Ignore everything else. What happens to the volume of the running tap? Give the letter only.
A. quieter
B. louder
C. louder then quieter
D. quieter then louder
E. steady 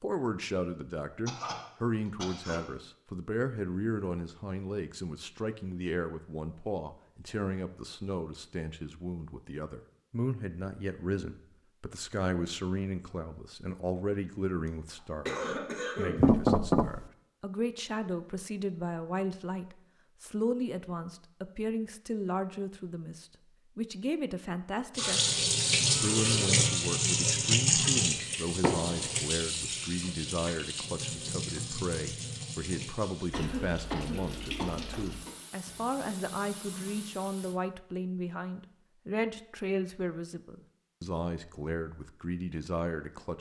A.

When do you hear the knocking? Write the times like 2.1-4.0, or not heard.
16.1-17.0, 28.6-29.1.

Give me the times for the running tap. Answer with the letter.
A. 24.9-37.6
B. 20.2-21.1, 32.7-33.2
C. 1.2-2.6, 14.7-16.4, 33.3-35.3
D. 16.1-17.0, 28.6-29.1
A.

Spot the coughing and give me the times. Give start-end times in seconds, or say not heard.
1.2-2.6, 14.7-16.4, 33.3-35.3.